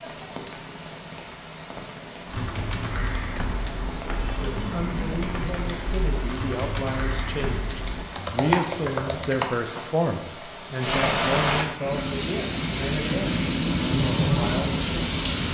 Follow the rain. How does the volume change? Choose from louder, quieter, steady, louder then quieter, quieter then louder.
louder.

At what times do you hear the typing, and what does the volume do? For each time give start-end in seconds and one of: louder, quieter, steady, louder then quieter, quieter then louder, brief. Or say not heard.
2.2-9.6 louder.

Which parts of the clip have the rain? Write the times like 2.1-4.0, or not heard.
0.0-15.4.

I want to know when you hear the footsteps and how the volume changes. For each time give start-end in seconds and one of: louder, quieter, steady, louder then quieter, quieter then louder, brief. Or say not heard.
not heard.